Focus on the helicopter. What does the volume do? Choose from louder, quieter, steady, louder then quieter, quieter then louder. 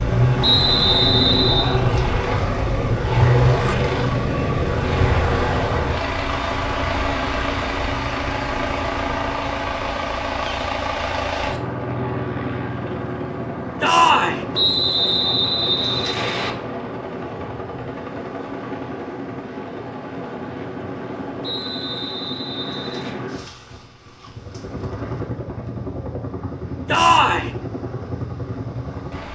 quieter.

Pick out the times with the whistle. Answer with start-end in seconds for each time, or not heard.
0.4-1.8, 14.5-16.5, 21.4-23.1.